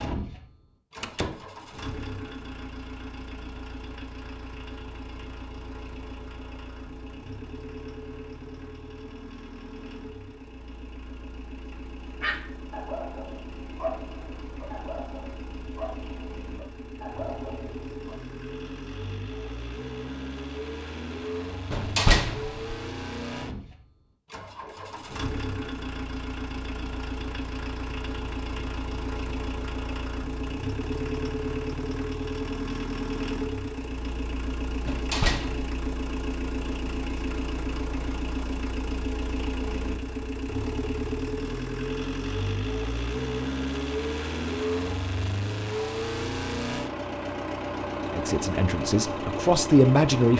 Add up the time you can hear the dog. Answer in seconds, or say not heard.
6 s.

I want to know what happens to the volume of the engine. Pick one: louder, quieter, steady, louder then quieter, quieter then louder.
louder.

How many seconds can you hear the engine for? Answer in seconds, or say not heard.
50 s.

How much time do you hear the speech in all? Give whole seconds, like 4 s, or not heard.
2 s.